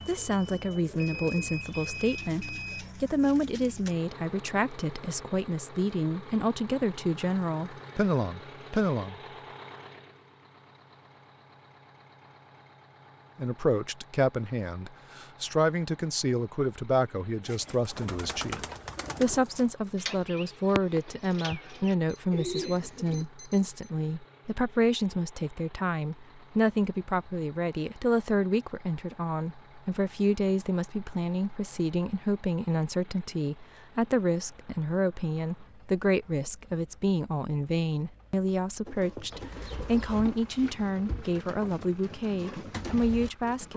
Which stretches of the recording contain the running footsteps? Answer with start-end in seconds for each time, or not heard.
not heard.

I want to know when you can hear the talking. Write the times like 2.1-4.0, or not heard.
0.1-9.2, 13.3-18.6, 19.2-43.7.